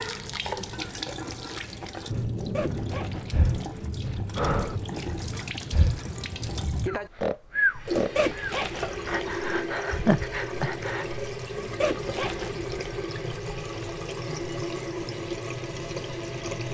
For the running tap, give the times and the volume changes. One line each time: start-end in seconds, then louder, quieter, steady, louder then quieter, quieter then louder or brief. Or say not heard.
0.0-16.6 steady.